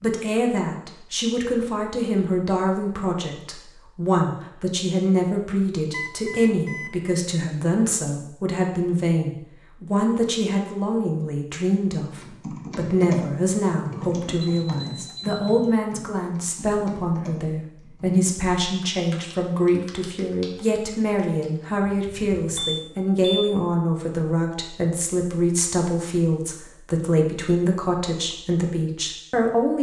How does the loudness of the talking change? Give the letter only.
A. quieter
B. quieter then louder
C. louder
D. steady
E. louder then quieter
D.